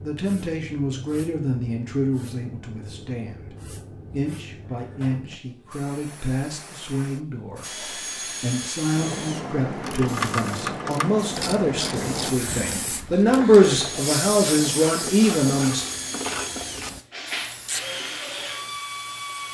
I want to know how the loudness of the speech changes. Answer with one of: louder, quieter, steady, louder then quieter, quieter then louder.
louder.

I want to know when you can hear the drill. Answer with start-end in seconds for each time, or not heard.
7.6-9.4, 13.7-19.5.